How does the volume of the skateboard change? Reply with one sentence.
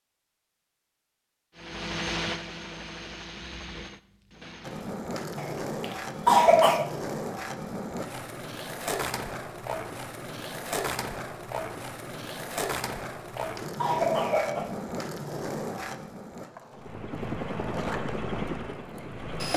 The loudness of the skateboard goes down.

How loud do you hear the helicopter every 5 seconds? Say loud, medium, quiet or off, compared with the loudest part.
loud, off, off, loud.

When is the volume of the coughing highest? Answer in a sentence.
The volume of the coughing peaks at 6 seconds.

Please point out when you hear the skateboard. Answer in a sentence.
The skateboard can be heard from 4.6 to 19.5 s.